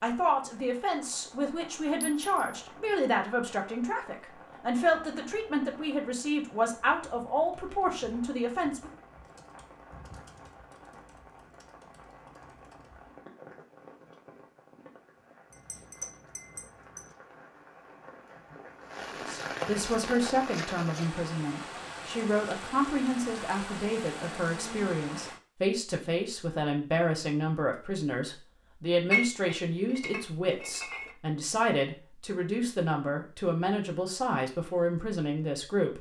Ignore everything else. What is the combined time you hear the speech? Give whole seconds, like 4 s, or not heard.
26 s.